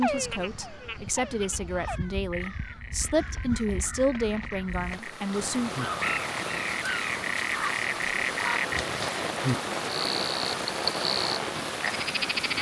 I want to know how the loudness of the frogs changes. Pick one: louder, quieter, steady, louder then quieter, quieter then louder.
louder.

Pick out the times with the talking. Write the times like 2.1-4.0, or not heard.
0.0-5.7.